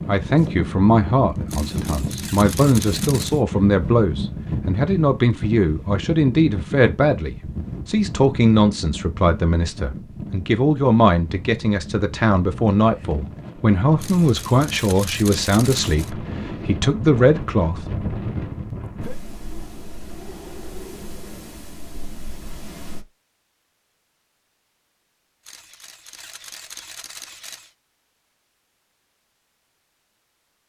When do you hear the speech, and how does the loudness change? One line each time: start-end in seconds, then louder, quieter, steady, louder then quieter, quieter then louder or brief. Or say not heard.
0.1-17.9 steady.